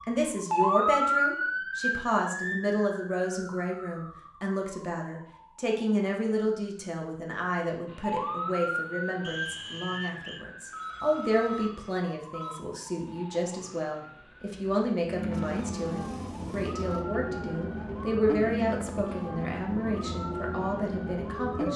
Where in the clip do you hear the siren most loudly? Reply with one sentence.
The volume of the siren peaks at 1 second.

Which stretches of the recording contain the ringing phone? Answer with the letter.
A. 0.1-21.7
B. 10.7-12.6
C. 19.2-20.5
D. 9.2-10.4
B.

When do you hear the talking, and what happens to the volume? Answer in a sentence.
You can hear the talking from 0.1 to 21.7 s, at a steady volume.